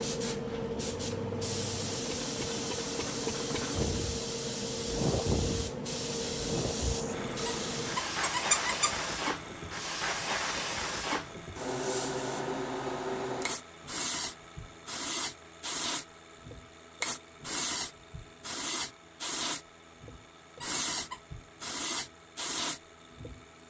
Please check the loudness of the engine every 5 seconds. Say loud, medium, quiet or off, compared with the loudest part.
loud, loud, medium, quiet, quiet.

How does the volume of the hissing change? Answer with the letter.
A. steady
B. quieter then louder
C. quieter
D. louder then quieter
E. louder
A.